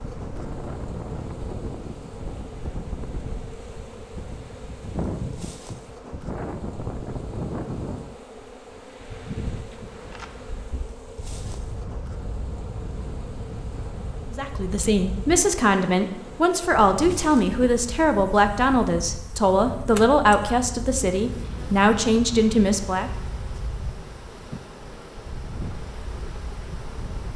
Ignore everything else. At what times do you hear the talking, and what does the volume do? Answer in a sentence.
The talking can be heard from 14.3 to 23.1 s, at a steady volume.